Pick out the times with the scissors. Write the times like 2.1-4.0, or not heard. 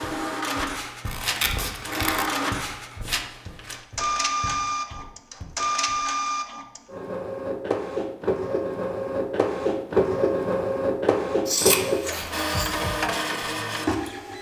1.1-2.3, 11.4-12.8.